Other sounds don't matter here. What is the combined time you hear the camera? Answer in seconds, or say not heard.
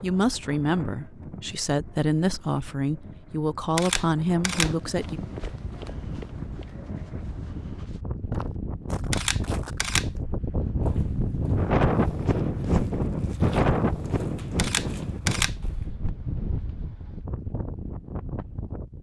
3 s.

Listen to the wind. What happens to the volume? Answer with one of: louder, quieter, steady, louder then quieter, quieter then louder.
louder then quieter.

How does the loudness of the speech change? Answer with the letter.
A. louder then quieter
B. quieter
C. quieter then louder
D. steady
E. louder
D.